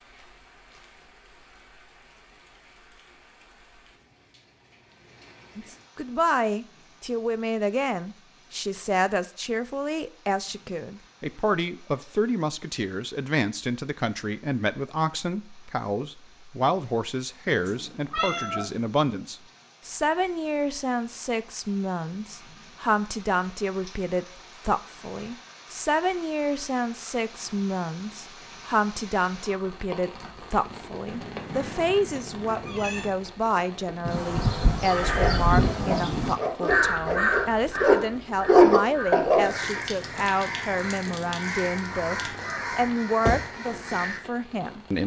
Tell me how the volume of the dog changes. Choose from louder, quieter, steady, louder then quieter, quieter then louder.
louder.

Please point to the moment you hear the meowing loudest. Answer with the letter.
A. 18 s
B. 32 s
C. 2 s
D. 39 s
A.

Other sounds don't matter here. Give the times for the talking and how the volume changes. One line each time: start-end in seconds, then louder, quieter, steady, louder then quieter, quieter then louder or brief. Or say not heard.
5.5-45.0 steady.